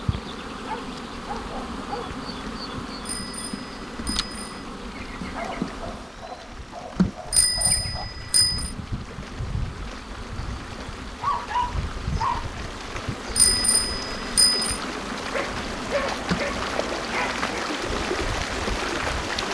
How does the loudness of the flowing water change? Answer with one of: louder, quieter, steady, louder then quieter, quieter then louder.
louder.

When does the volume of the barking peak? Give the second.
11 s.